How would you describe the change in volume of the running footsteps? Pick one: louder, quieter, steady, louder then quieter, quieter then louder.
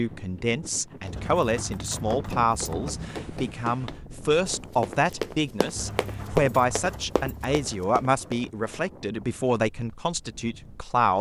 louder then quieter.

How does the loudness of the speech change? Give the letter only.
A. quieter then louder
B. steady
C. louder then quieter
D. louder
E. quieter
B.